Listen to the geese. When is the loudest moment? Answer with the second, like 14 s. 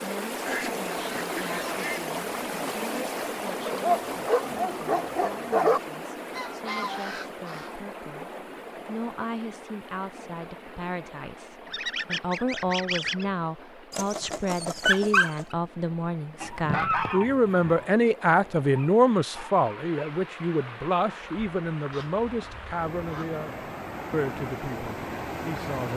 17 s.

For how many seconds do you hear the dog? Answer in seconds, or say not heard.
5 s.